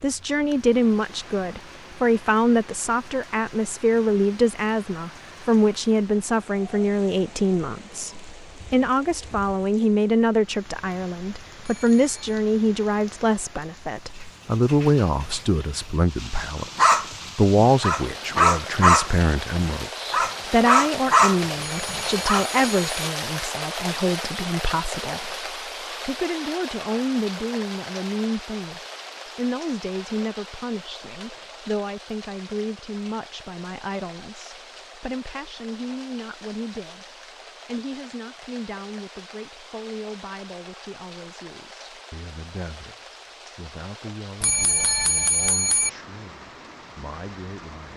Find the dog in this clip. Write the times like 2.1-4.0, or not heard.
16.8-22.4.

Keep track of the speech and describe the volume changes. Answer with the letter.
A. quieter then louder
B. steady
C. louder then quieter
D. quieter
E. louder
D.